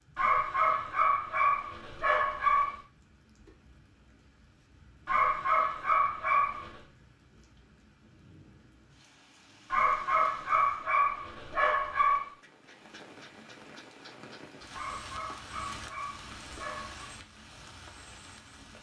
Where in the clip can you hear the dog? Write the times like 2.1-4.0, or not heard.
0.1-2.8, 5.0-6.8, 9.7-12.3, 14.7-17.1.